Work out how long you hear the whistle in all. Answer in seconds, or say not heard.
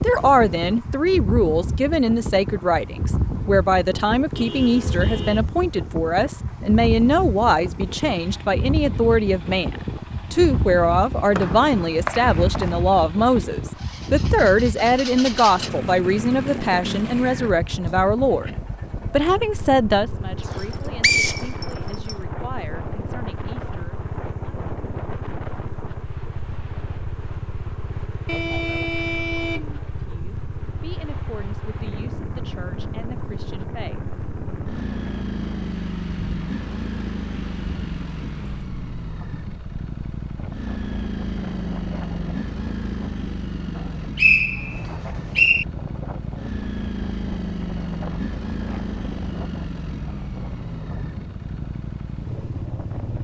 5 s.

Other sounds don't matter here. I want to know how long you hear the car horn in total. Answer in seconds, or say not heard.
3 s.